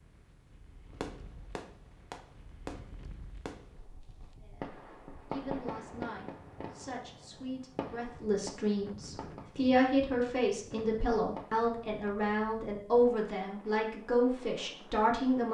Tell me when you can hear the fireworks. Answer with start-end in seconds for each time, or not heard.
0.9-12.1.